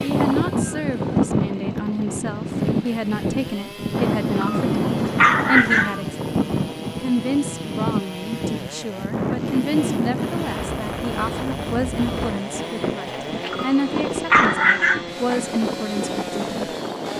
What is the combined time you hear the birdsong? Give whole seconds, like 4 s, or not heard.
not heard.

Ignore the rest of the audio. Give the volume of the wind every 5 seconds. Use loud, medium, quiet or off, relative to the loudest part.
loud, loud, medium, medium.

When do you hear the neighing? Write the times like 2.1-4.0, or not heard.
not heard.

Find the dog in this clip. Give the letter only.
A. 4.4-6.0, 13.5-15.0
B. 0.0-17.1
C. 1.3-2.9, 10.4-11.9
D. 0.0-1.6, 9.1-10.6
A.